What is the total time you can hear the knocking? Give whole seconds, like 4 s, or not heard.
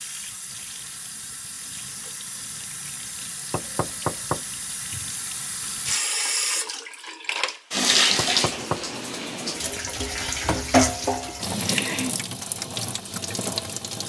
2 s.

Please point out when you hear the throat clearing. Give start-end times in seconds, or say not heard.
11.5-12.2.